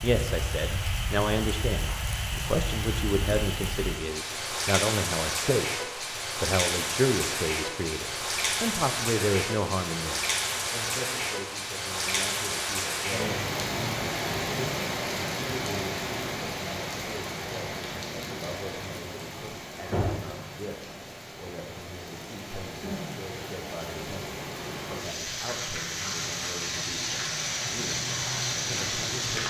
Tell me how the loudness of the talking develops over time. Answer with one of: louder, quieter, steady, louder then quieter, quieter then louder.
quieter.